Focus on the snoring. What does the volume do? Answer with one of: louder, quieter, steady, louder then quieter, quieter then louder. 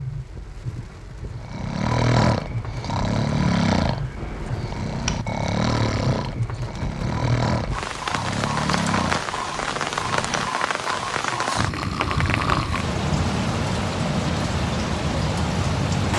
quieter.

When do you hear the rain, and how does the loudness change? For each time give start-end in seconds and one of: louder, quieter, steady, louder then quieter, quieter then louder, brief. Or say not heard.
0.0-16.1 louder.